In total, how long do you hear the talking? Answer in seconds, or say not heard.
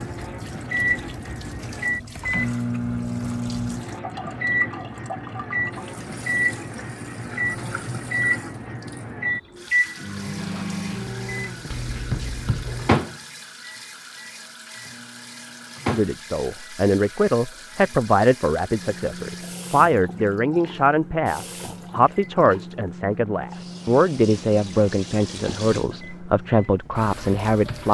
12 s.